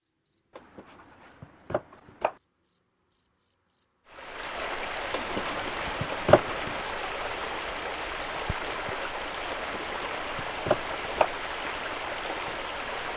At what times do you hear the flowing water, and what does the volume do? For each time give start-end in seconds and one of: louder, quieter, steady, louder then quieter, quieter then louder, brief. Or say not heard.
4.0-13.1 steady.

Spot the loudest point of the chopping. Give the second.
6 s.